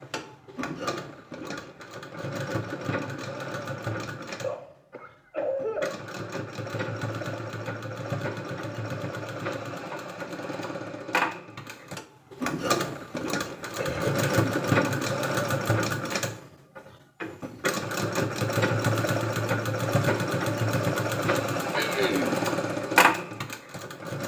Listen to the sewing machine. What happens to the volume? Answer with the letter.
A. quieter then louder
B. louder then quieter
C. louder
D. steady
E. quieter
C.